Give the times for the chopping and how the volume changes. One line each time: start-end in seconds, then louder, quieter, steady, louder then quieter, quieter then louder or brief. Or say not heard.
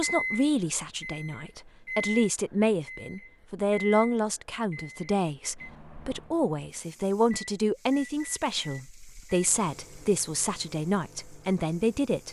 not heard.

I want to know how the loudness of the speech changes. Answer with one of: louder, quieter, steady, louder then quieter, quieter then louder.
steady.